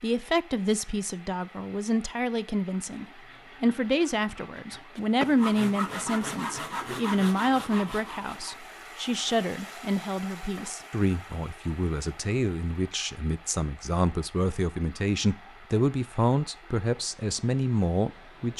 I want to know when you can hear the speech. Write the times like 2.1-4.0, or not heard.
0.0-18.5.